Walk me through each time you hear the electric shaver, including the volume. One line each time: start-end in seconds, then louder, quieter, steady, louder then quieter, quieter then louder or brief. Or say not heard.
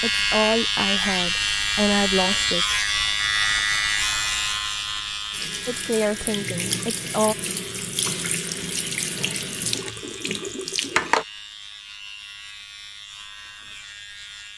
0.0-14.5 quieter.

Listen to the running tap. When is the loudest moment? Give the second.
11 s.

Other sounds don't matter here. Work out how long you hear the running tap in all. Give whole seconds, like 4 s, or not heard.
6 s.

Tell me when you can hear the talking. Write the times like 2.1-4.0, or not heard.
0.0-2.8, 5.7-7.3.